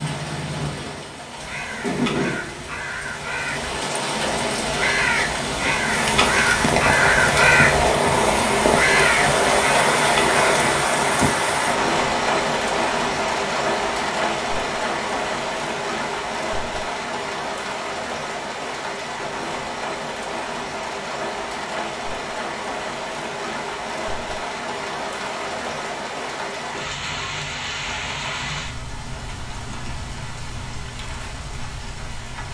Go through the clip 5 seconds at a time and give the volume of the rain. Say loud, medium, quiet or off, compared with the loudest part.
medium, loud, loud, medium, medium, medium, quiet.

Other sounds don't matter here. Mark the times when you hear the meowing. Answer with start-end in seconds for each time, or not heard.
29.1-30.2.